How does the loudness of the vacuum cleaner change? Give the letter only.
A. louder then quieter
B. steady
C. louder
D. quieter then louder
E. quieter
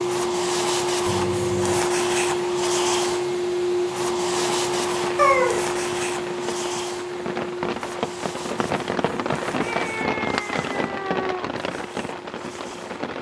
E.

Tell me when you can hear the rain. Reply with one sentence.
You can hear the rain from 4.4 to 13.1 s.